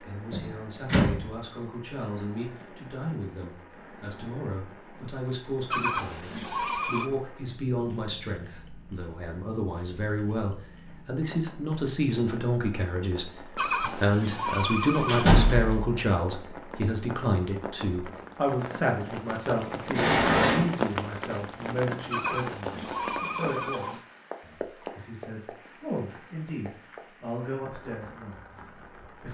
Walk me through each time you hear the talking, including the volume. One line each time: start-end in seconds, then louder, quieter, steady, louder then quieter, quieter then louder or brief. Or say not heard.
0.0-29.2 louder then quieter.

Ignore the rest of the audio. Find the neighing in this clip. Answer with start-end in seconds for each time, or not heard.
5.7-7.1, 13.6-15.3, 22.1-24.0.